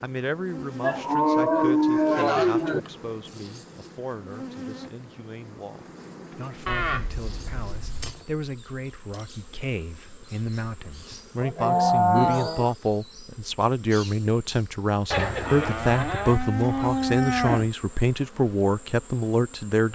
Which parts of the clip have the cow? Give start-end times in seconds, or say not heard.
0.8-2.8, 6.7-8.2, 11.4-12.8, 15.1-17.7.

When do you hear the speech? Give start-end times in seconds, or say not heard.
0.0-19.9.